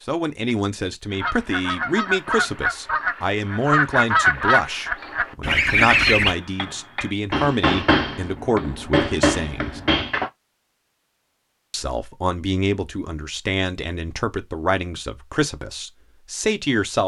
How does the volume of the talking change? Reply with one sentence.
The volume of the talking stays about the same.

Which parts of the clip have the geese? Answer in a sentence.
The geese can be heard from 1.1 to 6.3 s.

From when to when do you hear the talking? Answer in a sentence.
The talking can be heard from 0.0 to 9.8 s and from 11.7 to 17.0 s.